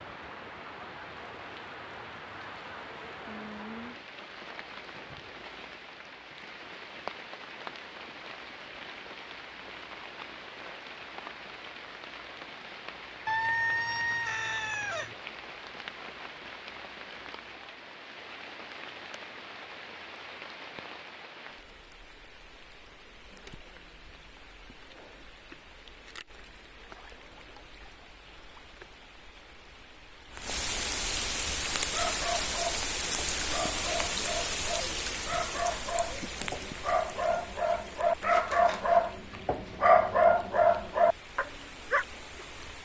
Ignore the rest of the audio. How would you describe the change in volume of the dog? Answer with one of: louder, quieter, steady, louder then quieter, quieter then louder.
louder.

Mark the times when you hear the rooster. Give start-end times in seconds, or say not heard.
13.2-15.2.